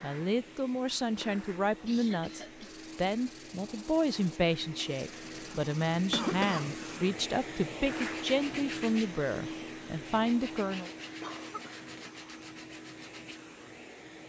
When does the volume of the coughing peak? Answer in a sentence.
The loudest moment of the coughing is at 6 seconds.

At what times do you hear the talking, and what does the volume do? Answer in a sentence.
You can hear the talking from 0.0 to 10.9 s, at a steady volume.